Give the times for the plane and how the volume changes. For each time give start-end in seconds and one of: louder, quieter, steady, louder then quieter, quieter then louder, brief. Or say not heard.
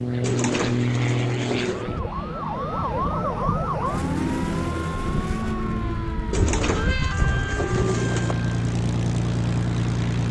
0.0-10.2 quieter then louder.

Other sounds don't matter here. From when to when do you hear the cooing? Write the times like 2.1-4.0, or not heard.
0.2-1.9, 6.3-8.3.